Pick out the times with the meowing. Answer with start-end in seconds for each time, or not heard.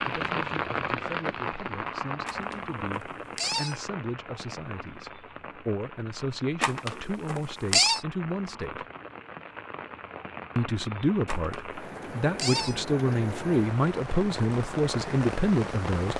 2.2-3.8, 6.6-8.0, 11.2-12.8.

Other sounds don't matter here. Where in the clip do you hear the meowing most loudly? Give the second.
8 s.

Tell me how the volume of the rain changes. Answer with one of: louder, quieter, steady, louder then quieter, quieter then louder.
quieter then louder.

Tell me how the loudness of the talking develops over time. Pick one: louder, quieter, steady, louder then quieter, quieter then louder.
louder.